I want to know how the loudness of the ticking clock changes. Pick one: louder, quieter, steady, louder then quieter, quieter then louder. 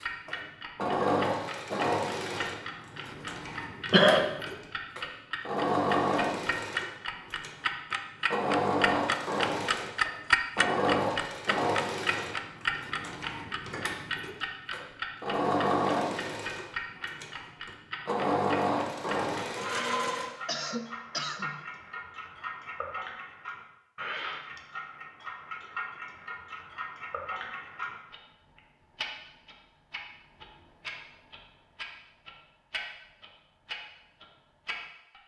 louder then quieter.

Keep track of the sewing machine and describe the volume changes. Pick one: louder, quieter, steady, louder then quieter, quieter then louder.
steady.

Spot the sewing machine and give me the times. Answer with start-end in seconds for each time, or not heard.
0.0-20.4.